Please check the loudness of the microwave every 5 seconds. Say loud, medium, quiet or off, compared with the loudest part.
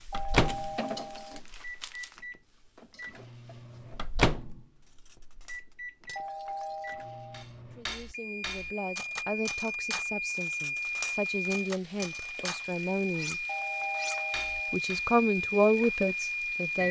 loud, medium, loud, loud.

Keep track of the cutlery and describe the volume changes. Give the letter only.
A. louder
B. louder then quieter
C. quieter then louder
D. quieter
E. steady
A.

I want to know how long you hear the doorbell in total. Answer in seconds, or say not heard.
4 s.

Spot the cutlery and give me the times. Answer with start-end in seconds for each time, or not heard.
4.8-15.1.